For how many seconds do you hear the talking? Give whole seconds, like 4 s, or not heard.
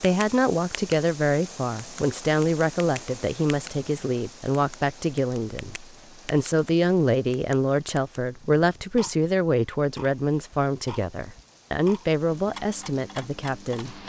14 s.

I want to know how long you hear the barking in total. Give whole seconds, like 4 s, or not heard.
not heard.